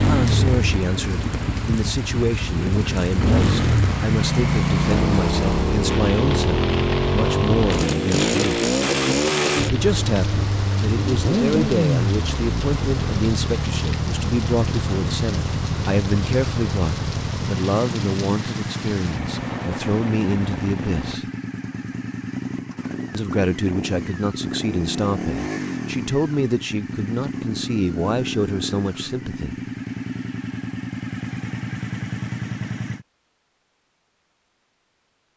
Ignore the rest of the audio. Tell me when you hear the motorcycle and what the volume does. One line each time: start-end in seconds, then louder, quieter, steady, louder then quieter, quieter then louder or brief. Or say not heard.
0.0-33.0 quieter.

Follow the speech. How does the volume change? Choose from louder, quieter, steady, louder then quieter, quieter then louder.
steady.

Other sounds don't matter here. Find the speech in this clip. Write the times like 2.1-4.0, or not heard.
0.0-8.6, 9.7-21.2, 23.1-29.6.